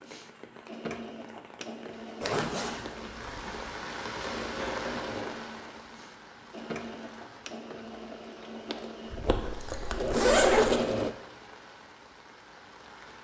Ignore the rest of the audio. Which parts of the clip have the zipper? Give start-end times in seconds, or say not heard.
2.2-3.8, 9.2-10.8.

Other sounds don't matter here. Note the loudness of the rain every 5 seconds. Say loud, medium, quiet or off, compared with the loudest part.
loud, medium, medium.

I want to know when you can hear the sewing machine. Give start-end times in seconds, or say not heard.
0.0-11.2.